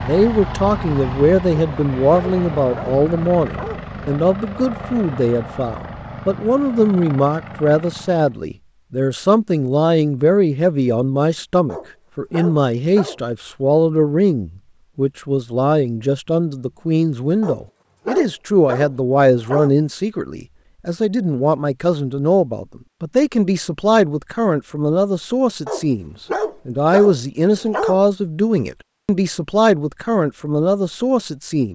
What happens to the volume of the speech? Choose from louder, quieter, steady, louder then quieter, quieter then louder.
steady.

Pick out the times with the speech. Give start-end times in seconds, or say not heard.
0.0-31.7.